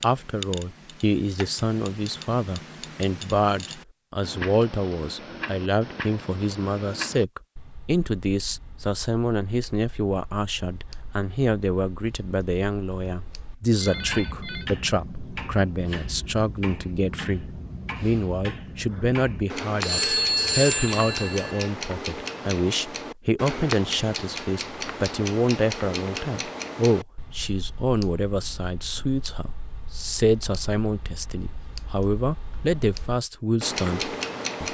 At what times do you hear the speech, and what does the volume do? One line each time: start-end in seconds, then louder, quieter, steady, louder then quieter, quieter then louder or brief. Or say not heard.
0.0-34.7 steady.